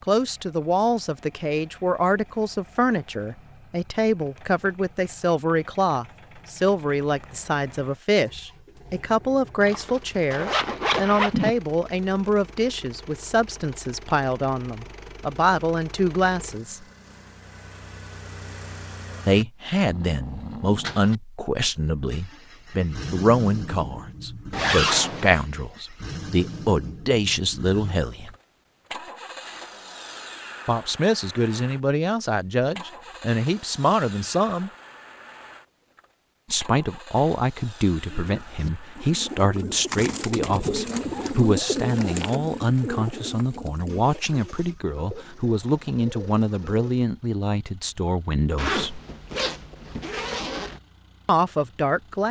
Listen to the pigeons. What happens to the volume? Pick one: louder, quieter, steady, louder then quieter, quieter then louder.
louder then quieter.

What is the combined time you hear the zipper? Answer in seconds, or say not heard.
5 s.